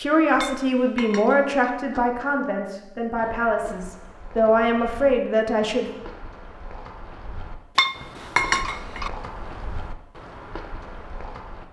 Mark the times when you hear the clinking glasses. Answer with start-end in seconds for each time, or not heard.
0.4-1.6, 7.8-9.1.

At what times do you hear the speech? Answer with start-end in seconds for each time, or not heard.
0.0-5.8.